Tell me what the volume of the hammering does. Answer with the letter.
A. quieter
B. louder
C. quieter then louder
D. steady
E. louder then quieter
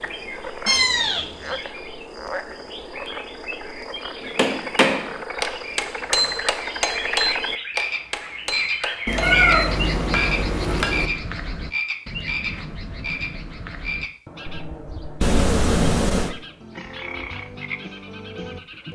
A.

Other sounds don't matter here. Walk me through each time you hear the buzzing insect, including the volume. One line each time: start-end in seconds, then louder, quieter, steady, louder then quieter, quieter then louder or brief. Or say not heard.
not heard.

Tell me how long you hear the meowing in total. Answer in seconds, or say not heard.
4 s.